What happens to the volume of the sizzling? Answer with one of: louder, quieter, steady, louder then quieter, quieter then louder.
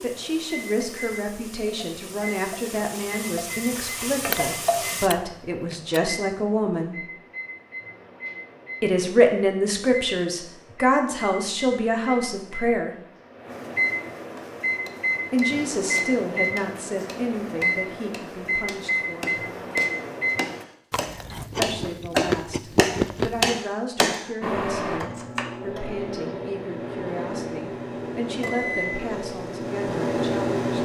louder.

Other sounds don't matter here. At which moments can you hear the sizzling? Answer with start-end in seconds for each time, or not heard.
0.0-5.1.